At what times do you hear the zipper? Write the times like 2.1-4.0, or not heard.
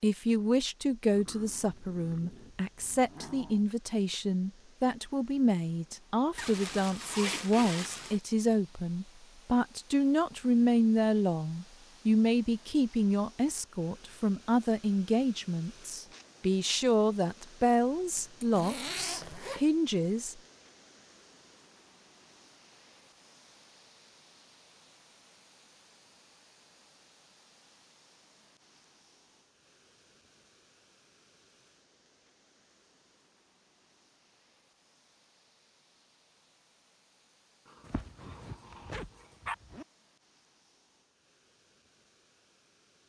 6.3-8.2, 18.1-19.6, 37.8-39.9.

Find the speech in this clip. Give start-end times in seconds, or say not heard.
0.0-20.4.